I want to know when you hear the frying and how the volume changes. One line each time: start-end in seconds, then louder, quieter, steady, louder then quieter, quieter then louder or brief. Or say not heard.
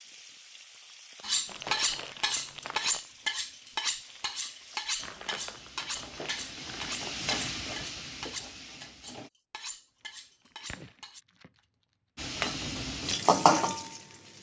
0.0-9.3 louder
12.2-14.3 brief.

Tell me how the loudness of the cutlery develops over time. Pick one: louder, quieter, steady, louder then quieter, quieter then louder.
quieter.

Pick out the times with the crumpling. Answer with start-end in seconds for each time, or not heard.
1.4-3.1, 5.0-7.0, 10.4-11.9.